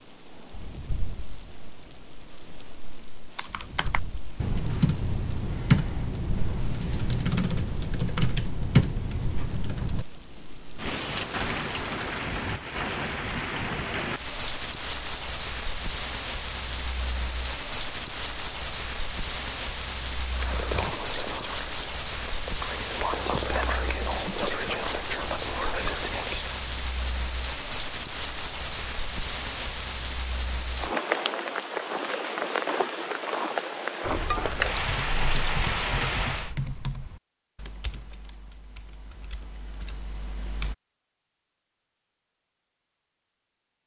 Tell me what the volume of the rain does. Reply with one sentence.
The loudness of the rain goes up.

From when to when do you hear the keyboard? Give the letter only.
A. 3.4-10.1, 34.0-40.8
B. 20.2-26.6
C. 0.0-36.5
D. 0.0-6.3
A.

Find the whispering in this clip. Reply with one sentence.
The whispering can be heard from 20.2 to 26.6 s.